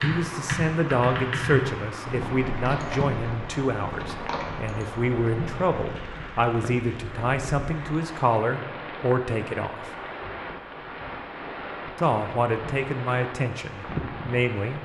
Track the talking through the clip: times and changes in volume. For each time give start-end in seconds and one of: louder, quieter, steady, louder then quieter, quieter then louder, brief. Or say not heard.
0.0-9.9 steady
12.0-14.7 brief.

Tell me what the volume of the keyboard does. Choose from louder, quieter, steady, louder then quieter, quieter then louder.
quieter.